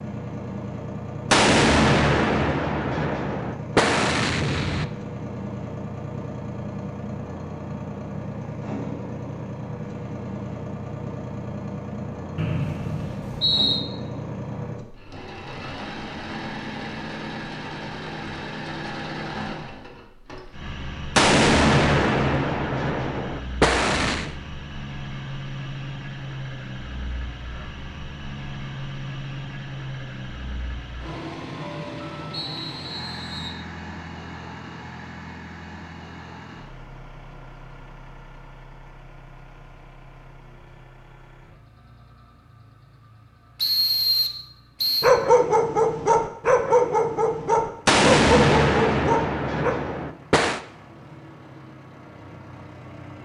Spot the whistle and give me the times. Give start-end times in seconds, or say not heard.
12.3-13.8, 32.3-33.6, 43.5-45.1.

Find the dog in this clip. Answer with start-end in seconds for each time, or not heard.
45.0-49.8.